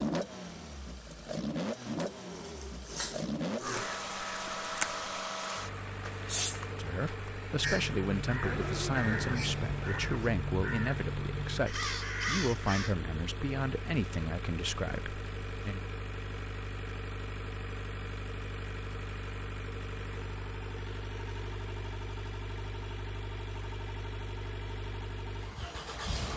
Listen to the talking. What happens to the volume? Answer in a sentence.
The loudness of the talking stays about the same.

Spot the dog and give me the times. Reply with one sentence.
You can hear the dog from 1.9 to 4.0 s.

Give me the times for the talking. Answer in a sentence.
You can hear the talking from 6.7 to 15.8 s.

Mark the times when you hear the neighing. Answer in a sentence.
The neighing can be heard from 8.4 to 10.2 s.